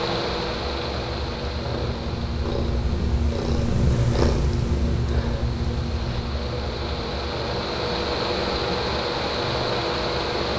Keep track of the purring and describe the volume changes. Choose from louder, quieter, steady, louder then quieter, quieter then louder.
louder then quieter.